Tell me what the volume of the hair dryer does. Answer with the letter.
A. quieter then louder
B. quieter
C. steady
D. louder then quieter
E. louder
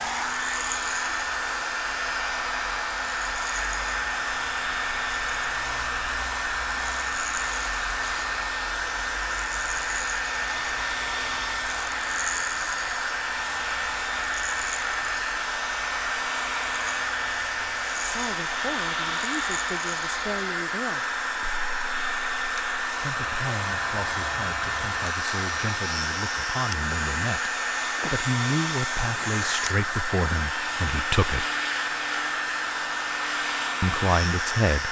C.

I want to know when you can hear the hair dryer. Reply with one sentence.
You can hear the hair dryer from 0.0 to 34.8 s.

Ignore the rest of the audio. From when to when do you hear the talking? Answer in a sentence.
You can hear the talking from 18.0 to 21.1 s, from 23.0 to 31.4 s and from 33.8 to 34.8 s.